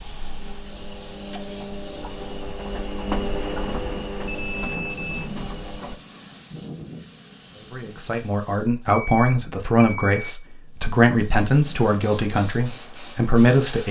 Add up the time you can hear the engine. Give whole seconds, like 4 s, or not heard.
6 s.